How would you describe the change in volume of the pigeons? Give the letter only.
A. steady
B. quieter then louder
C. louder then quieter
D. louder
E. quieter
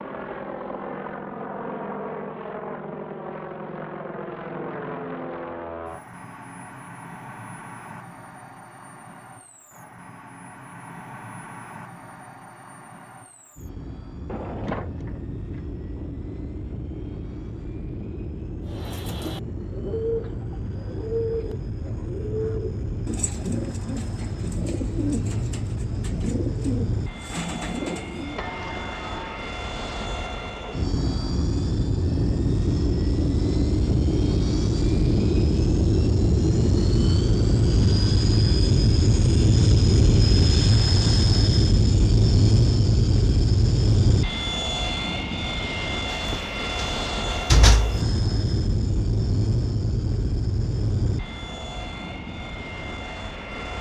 A.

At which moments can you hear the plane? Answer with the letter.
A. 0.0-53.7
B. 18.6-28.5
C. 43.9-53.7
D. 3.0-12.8
A.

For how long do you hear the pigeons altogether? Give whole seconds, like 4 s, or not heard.
10 s.